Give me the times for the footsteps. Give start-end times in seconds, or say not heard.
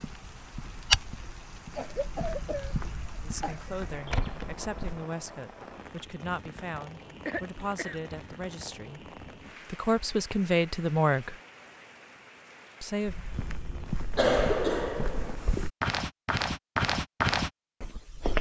0.0-5.0, 13.1-18.3.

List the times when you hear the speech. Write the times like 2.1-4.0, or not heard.
3.2-11.3, 12.8-13.2.